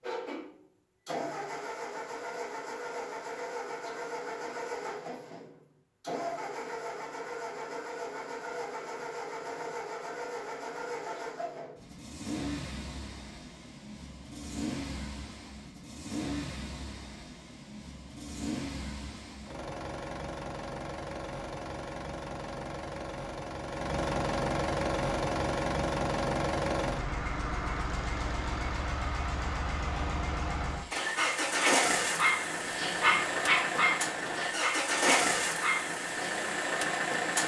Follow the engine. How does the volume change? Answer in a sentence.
The loudness of the engine goes up.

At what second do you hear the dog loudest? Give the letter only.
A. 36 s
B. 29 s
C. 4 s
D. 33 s
D.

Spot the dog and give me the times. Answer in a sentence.
The dog can be heard from 30.8 to 36.4 s.